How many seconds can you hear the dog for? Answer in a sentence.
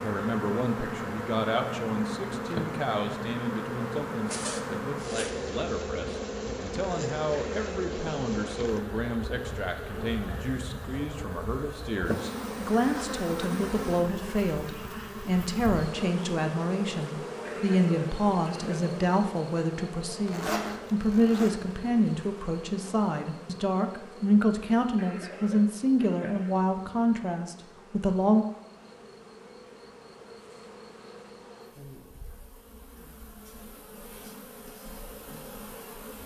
The dog can't be heard in this clip.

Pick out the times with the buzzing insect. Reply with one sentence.
The buzzing insect can be heard from 0.0 to 36.2 s.